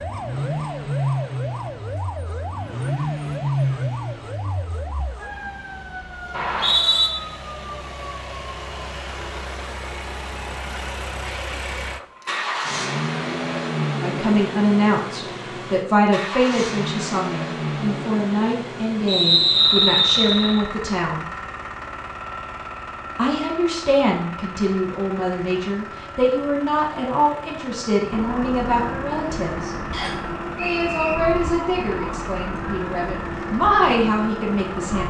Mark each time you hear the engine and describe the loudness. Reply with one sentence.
You can hear the engine from 0.0 to 35.0 s, getting quieter.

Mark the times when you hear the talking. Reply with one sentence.
You can hear the talking from 14.0 to 21.2 s, from 23.1 to 29.8 s and from 30.6 to 35.0 s.